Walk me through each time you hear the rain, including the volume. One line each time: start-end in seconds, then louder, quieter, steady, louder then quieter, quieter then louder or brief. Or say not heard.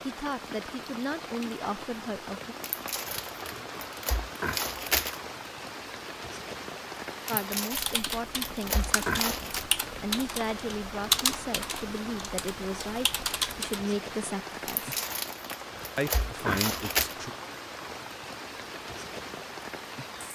0.0-20.2 steady.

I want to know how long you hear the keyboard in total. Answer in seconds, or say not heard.
6 s.